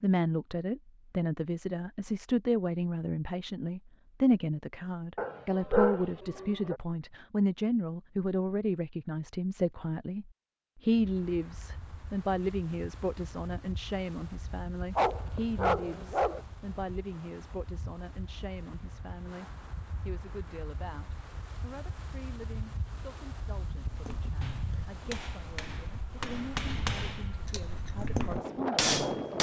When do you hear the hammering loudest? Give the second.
29 s.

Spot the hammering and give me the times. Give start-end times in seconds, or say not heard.
23.9-29.3.